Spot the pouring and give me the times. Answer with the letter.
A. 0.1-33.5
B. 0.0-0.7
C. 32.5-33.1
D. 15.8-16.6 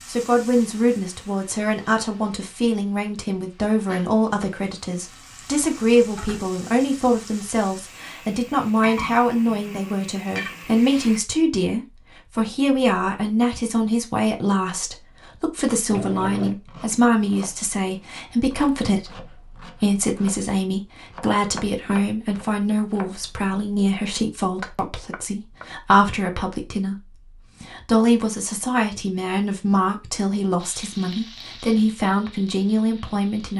D.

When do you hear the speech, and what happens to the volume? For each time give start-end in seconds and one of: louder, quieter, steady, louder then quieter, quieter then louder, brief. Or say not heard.
0.1-33.5 steady.